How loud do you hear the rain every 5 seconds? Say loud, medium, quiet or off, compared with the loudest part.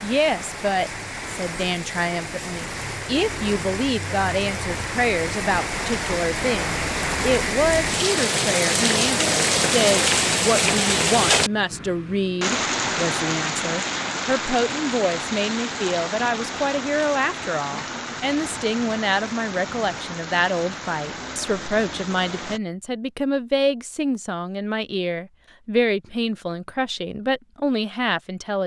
medium, loud, loud, medium, medium, off.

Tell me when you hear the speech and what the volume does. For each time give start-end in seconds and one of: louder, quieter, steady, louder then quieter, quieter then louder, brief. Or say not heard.
0.0-28.6 steady.